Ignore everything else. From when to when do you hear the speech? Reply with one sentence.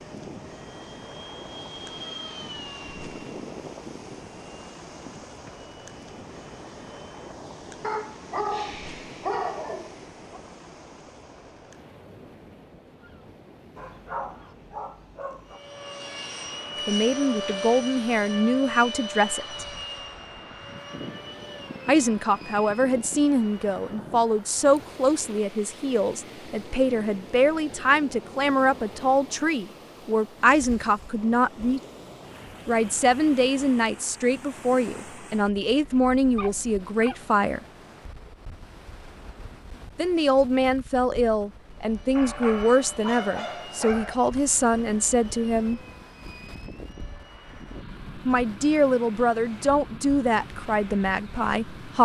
The speech can be heard from 16.9 to 19.6 s, from 21.9 to 31.8 s, from 32.6 to 37.6 s, from 40.0 to 45.8 s and from 48.1 to 52.0 s.